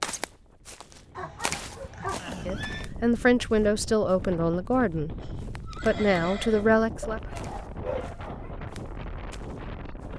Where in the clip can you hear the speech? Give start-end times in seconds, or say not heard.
2.2-7.2.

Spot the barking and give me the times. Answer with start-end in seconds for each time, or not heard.
1.1-2.2, 7.0-8.5.